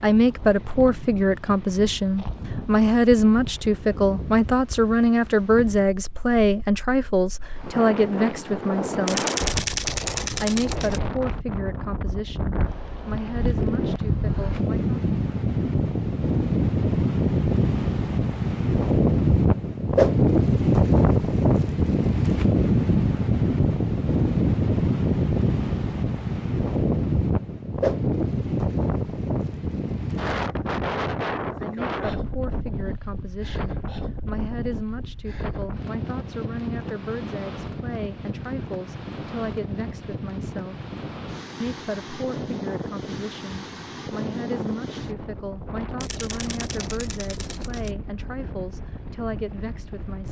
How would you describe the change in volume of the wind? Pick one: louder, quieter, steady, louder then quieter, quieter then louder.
louder then quieter.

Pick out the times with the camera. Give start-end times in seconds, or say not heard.
9.1-11.0, 46.0-48.0.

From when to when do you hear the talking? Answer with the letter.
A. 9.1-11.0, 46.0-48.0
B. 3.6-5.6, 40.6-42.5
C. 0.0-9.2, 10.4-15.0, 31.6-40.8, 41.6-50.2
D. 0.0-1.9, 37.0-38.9
C.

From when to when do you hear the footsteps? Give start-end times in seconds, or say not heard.
not heard.